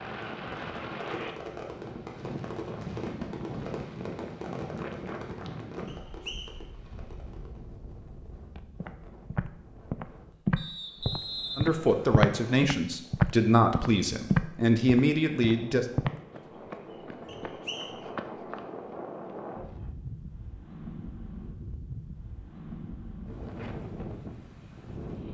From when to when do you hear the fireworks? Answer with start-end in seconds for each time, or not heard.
0.2-7.8.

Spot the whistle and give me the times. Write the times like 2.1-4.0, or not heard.
5.8-6.5, 10.6-12.6, 17.2-17.9.